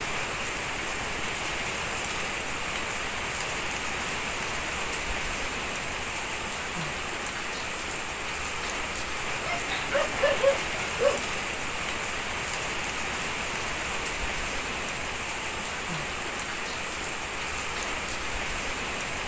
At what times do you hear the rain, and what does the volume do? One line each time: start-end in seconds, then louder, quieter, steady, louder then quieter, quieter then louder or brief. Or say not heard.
0.0-19.2 steady.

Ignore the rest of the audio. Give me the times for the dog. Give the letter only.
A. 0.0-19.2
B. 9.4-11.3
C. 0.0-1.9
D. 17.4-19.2
B.